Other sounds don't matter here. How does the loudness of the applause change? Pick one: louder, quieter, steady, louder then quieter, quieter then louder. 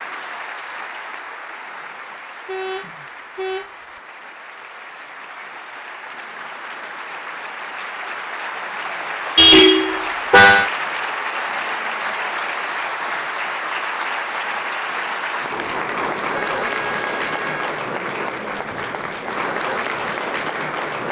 louder.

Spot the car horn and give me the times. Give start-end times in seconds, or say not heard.
2.5-3.7, 9.3-10.7, 16.4-17.8.